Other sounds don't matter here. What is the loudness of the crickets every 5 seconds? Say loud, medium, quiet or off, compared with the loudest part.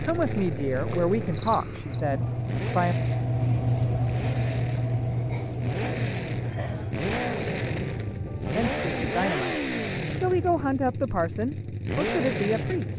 loud, medium, off.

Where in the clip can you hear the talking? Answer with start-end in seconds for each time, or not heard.
0.0-3.0, 8.6-12.9.